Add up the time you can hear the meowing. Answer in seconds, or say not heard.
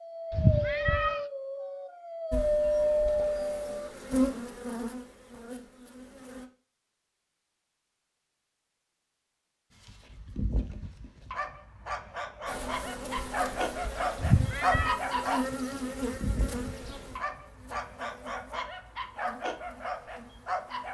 2 s.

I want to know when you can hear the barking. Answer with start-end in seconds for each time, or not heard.
0.0-3.9, 9.7-20.8.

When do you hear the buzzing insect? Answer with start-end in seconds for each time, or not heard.
2.3-6.5, 12.4-20.8.